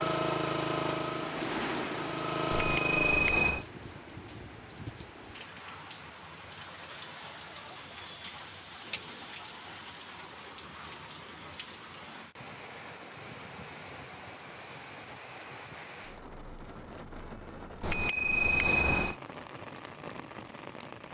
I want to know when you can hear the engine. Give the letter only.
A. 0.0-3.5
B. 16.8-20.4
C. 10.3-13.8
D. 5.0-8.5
A.